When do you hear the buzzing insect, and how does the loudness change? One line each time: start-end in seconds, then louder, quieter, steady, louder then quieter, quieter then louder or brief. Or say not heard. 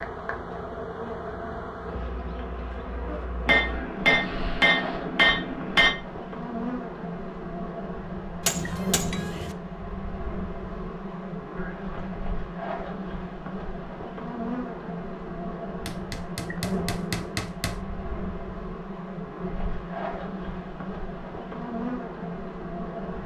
0.0-23.2 steady.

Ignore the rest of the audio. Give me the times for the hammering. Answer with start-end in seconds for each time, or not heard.
3.5-6.0, 8.4-9.6, 15.8-17.8.